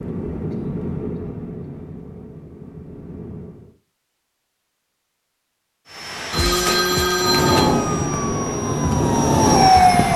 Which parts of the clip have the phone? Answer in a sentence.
You can hear the phone from 6.3 to 7.8 s.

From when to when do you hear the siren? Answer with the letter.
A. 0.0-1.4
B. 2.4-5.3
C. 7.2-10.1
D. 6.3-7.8
C.